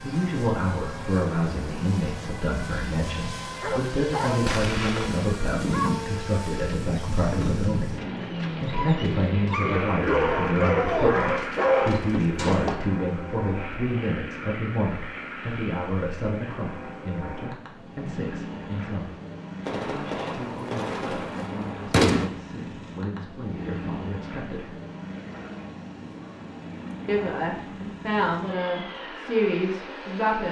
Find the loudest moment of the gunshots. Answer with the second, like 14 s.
22 s.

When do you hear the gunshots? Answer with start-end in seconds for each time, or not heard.
12.3-12.8, 19.6-22.3.